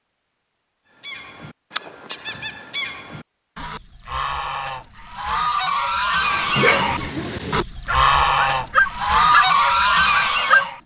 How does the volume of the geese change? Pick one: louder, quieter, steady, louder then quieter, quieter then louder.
louder.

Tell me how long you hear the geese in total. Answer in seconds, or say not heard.
10 s.